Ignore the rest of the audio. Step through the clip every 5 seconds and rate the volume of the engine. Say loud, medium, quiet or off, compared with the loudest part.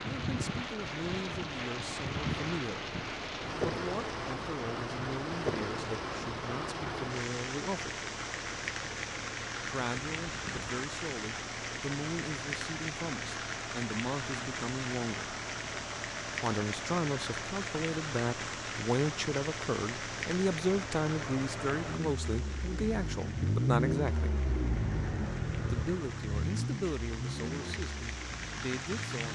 medium, medium, medium, medium, loud, loud.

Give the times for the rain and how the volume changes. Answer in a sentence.
You can hear the rain from 0.0 to 29.2 s, getting quieter.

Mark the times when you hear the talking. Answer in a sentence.
The talking can be heard from 0.0 to 8.0 s, from 9.6 to 15.3 s, from 16.4 to 24.3 s and from 25.6 to 29.2 s.